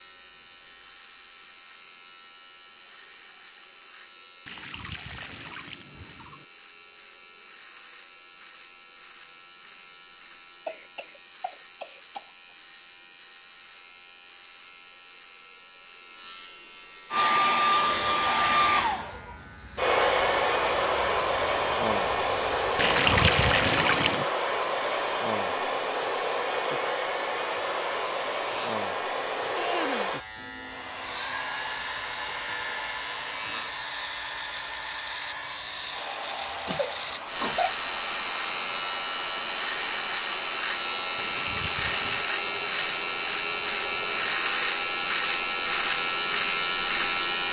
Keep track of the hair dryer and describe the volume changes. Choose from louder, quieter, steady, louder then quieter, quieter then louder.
quieter.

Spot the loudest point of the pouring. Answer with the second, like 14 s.
23 s.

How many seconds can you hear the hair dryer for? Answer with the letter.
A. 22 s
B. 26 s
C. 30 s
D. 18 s
C.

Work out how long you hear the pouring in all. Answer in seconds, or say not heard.
5 s.